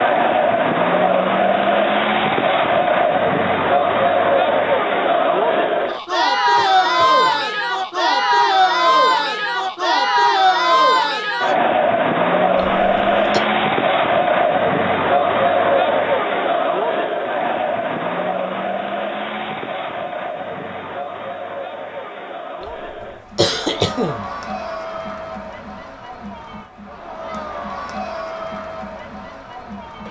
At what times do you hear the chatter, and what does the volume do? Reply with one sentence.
You can hear the chatter from 0.0 to 30.0 s, getting quieter.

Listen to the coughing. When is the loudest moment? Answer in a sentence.
The volume of the coughing peaks at 24 seconds.